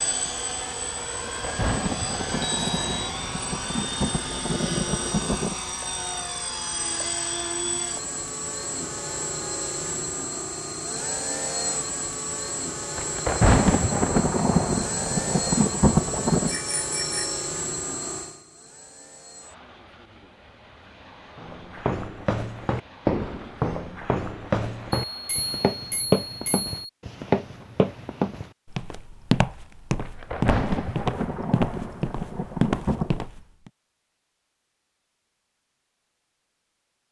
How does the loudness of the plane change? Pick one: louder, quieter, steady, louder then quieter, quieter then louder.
quieter.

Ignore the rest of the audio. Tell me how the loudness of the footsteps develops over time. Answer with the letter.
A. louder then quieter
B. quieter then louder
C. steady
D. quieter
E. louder
C.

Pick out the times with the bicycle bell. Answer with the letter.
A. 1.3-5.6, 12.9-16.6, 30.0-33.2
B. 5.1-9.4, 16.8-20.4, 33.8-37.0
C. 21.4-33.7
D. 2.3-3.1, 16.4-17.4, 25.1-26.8
D.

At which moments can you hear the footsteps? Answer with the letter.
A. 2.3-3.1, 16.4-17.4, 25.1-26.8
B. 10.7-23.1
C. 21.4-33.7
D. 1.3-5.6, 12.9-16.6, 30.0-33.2
C.